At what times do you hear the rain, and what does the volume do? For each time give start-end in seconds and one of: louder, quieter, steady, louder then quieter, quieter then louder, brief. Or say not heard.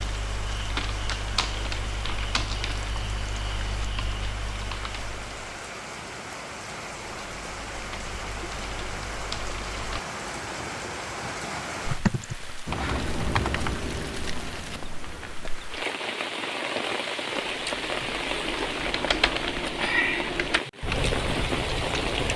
0.0-22.3 louder.